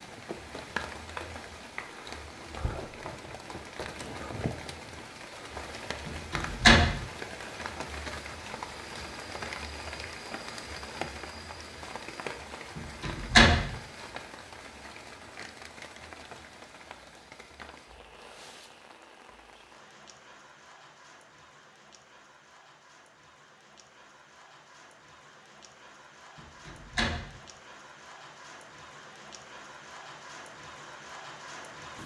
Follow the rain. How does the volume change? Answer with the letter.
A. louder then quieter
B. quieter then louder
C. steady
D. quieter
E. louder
B.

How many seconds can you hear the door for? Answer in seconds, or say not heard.
3 s.